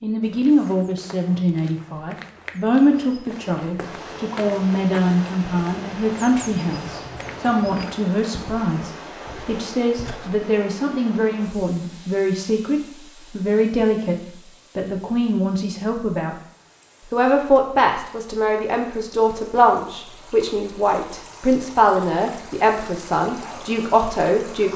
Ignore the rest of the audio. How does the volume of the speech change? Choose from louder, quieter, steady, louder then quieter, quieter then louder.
steady.